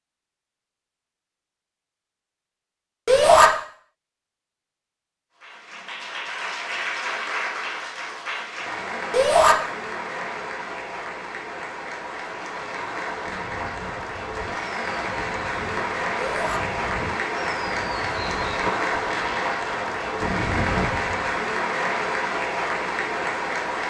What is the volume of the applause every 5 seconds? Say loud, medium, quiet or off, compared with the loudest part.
off, medium, medium, loud, loud.